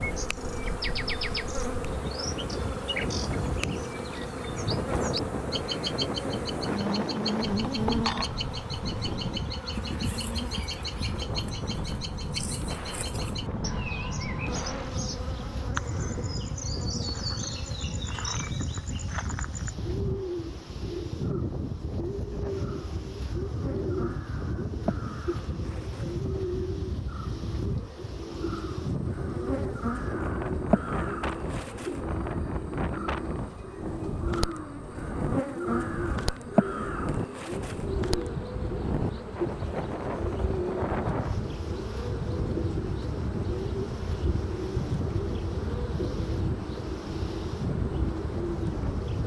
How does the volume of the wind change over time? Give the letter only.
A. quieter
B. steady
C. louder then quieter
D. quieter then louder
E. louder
B.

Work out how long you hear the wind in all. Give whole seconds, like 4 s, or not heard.
49 s.